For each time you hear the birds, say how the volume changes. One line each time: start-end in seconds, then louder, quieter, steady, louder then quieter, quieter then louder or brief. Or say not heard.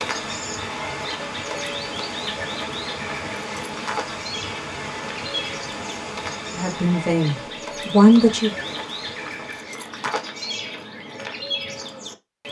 0.0-12.4 steady.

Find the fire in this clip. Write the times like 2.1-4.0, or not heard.
not heard.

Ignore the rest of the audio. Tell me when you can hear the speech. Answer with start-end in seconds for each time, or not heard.
6.5-8.6.